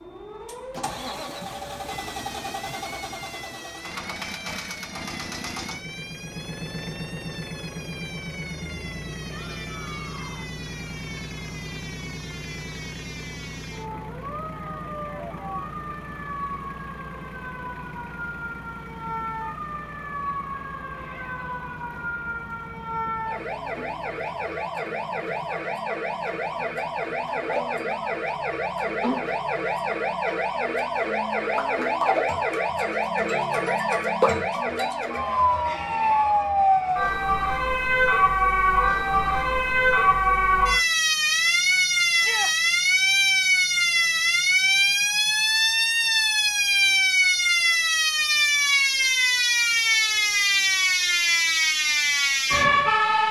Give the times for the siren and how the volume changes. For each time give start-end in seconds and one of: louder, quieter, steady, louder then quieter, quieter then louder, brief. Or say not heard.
0.0-53.2 louder.